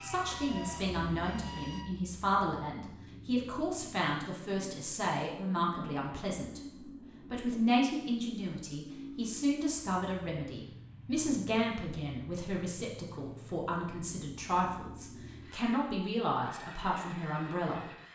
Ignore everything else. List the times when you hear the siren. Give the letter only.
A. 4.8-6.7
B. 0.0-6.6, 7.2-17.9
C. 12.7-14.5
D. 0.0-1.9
D.